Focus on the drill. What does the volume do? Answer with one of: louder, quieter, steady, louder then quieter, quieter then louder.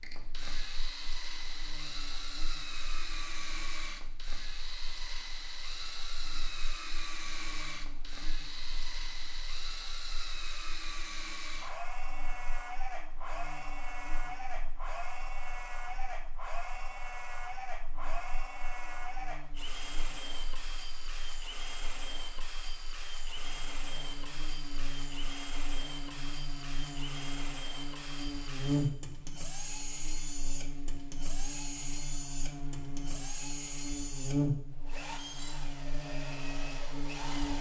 steady.